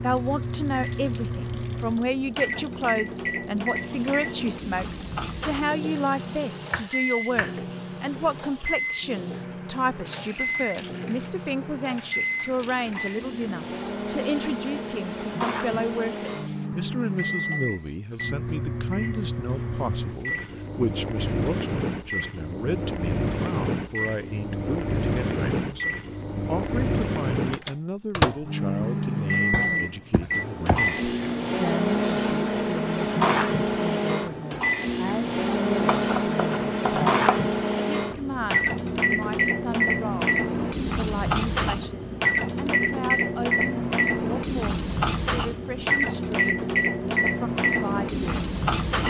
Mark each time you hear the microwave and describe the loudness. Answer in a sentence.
The microwave can be heard from 0.0 to 49.0 s, getting louder.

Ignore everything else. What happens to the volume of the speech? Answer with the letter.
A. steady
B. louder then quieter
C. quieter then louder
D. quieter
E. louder
D.